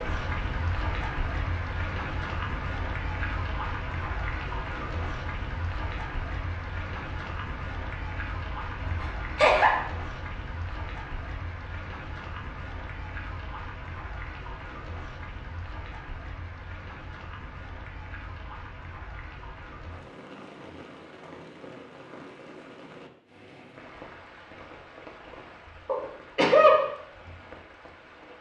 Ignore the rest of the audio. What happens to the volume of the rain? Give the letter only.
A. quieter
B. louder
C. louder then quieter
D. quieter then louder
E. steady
A.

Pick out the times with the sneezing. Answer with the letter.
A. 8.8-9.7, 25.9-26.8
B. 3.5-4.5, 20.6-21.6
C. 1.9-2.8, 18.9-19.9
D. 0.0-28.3
A.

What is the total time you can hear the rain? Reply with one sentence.
You can hear the rain for 28 seconds altogether.